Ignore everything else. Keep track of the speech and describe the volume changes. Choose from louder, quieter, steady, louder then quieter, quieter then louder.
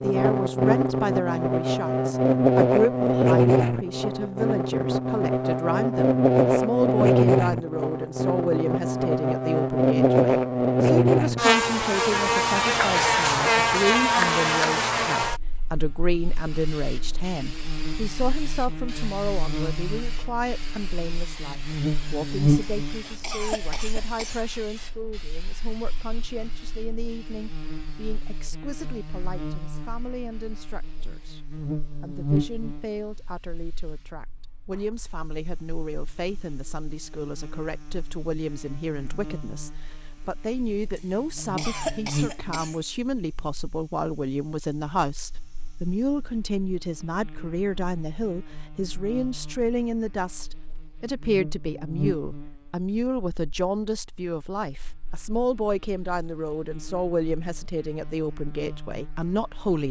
quieter then louder.